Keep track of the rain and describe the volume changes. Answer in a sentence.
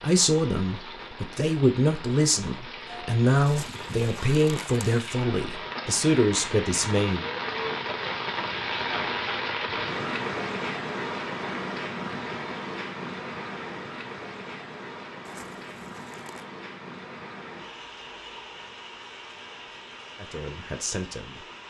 The volume of the rain goes up, then down.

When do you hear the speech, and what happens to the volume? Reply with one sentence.
You can hear the speech from 0.0 to 7.2 s, at a steady volume; and briefly from 20.1 to 21.4 s.